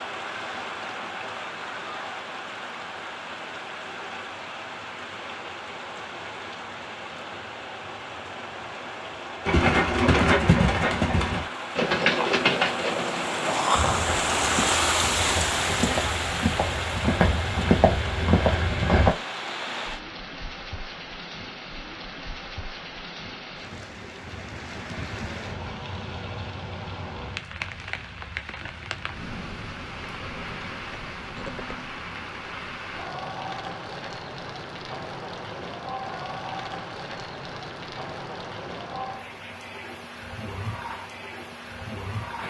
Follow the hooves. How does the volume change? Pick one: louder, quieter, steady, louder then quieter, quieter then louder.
quieter then louder.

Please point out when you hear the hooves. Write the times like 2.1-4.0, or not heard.
9.4-19.1.